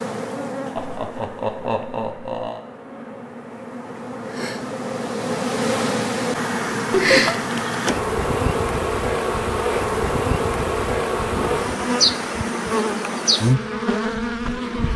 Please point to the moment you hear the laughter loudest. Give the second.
7 s.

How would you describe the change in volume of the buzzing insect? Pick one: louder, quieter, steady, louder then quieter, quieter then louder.
louder.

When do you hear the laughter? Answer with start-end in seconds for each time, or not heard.
0.8-2.6, 6.9-7.3, 11.3-12.3.